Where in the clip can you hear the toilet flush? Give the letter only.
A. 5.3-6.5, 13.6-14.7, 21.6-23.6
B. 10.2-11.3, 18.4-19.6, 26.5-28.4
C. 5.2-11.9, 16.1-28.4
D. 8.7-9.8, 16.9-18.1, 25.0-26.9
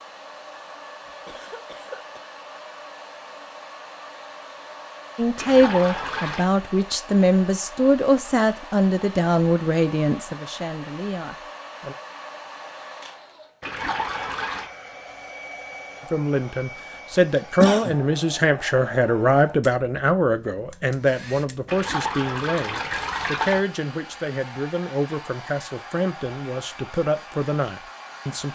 A.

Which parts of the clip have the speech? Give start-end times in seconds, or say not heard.
5.2-11.9, 16.1-28.4.